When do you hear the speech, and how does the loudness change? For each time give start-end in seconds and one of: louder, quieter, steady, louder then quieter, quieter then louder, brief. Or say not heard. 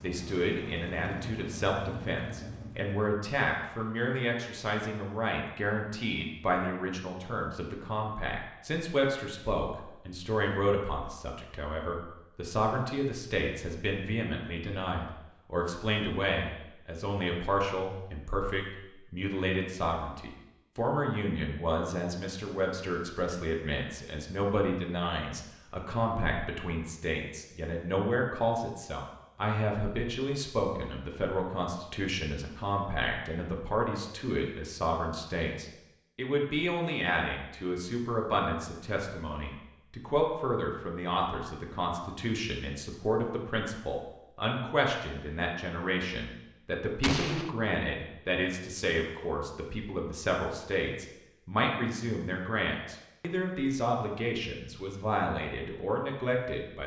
0.0-56.8 steady.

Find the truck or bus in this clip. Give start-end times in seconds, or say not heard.
0.0-3.0.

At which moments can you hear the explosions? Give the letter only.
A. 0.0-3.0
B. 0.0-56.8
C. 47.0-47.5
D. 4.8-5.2
C.